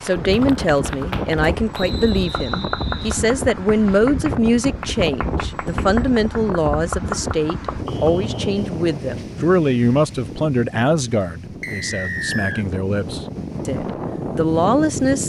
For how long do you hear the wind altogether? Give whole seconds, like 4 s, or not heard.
15 s.